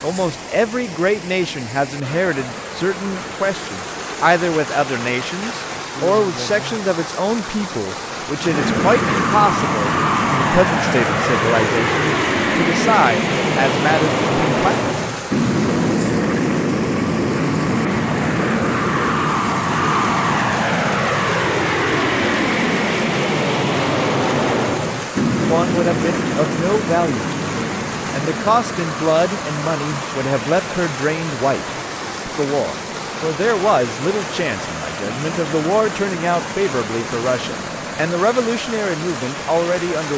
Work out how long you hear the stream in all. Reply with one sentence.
The stream can be heard for 40 seconds in total.